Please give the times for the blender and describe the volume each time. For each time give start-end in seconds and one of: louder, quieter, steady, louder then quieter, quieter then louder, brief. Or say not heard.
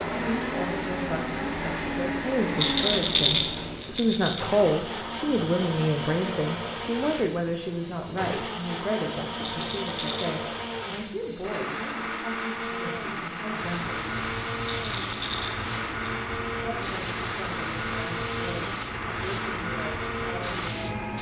0.0-21.1 steady.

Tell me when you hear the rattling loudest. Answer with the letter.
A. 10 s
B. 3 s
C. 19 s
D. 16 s
B.